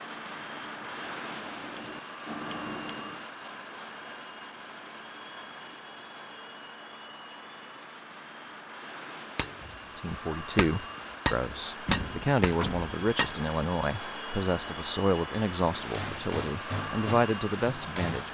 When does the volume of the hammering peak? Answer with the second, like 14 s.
12 s.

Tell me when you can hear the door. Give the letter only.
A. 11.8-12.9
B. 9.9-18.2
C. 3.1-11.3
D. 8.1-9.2
A.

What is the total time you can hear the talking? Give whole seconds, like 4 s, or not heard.
8 s.